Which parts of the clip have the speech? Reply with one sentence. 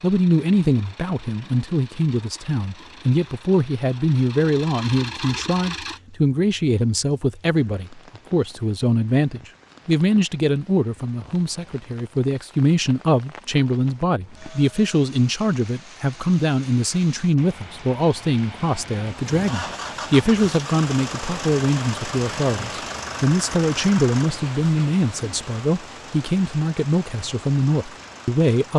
The speech can be heard from 0.0 to 28.7 s.